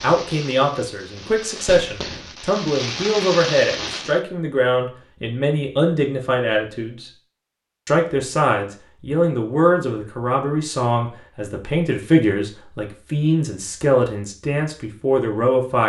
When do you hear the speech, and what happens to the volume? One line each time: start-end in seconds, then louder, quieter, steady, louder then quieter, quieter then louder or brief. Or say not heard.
0.0-7.1 steady
7.8-15.8 steady.